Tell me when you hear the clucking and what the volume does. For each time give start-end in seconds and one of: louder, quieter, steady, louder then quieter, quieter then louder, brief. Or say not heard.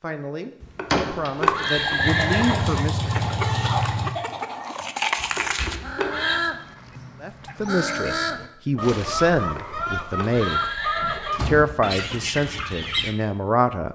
1.3-13.2 steady.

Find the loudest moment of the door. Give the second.
1 s.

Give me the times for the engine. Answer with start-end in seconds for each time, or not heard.
2.0-4.1.